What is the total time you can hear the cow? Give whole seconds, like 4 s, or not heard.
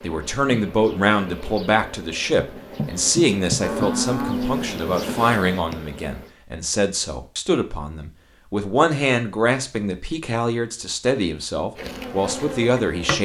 2 s.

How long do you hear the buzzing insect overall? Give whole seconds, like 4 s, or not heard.
8 s.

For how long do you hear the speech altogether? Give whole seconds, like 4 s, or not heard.
13 s.